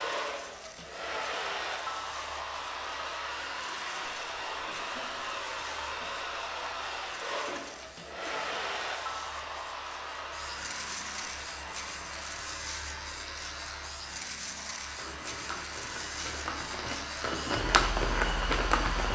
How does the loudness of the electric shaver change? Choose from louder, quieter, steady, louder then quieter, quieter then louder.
louder.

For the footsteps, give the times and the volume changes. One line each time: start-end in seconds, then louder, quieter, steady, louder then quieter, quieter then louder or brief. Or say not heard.
14.9-19.1 louder.